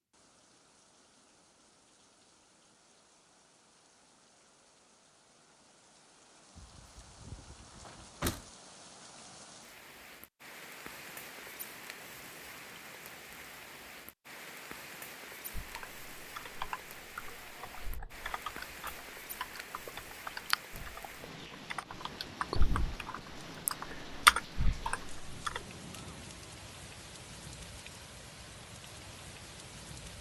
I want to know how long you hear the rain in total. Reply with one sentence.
You can hear the rain for 30 seconds altogether.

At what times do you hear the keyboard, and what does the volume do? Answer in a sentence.
You can hear the keyboard from 15.5 to 25.6 s, getting louder.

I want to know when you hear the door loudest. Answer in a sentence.
The loudest moment of the door is at 8 seconds.